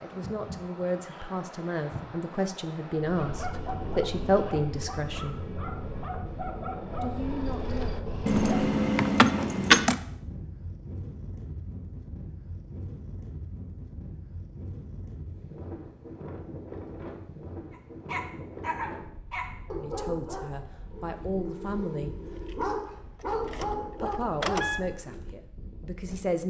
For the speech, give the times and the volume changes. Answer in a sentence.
The speech can be heard from 0.0 to 5.3 s, getting louder; briefly from 7.0 to 7.9 s; briefly from 19.7 to 22.1 s; and briefly from 23.9 to 26.4 s.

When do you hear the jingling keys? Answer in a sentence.
You can hear the jingling keys from 8.2 to 9.9 s and from 22.2 to 24.8 s.